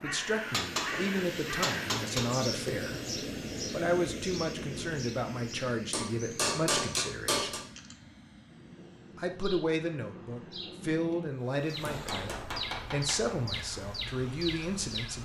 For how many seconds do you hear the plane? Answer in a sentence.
You can hear the plane for 15 seconds altogether.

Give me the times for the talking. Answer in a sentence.
You can hear the talking from 0.0 to 3.0 s, from 3.7 to 7.6 s and from 9.2 to 15.1 s.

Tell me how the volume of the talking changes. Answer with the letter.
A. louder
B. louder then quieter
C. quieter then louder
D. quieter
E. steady
E.